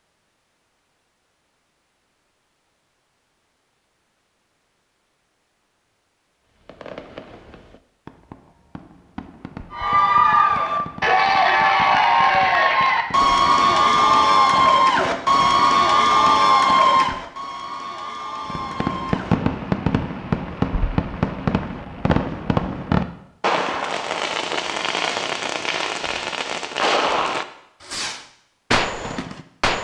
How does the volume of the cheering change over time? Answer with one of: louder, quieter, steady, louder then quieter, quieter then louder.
quieter.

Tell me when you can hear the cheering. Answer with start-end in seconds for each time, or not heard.
9.7-19.4.